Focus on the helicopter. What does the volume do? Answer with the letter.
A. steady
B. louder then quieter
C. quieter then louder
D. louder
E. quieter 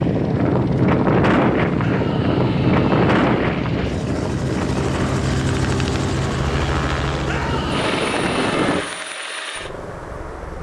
B.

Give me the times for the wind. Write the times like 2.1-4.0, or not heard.
0.0-8.8.